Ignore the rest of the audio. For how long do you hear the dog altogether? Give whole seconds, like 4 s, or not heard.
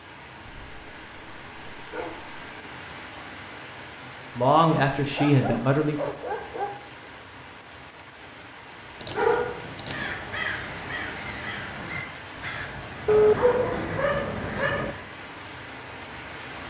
7 s.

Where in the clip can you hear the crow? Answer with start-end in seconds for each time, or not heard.
9.8-15.1.